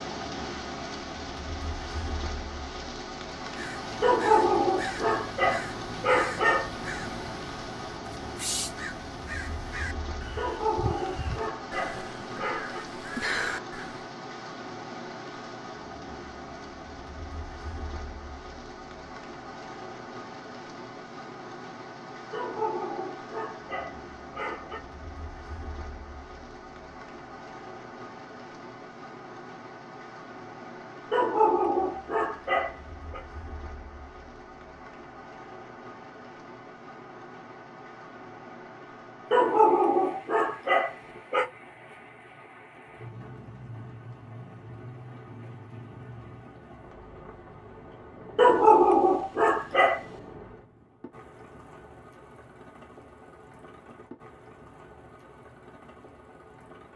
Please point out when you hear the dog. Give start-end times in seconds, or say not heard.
4.0-6.7, 10.3-12.8, 22.3-24.8, 31.1-33.2, 39.3-41.5, 48.4-50.0.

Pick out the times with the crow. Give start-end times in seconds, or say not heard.
3.4-14.1.